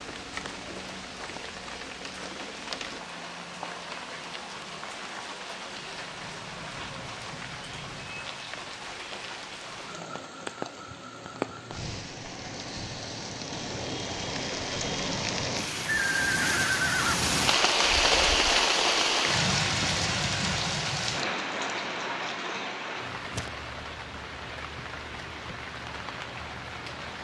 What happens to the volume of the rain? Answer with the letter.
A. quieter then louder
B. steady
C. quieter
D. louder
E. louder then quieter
E.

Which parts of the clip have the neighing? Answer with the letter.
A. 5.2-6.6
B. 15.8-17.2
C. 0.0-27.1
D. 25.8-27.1
B.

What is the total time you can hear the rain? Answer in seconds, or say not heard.
27 s.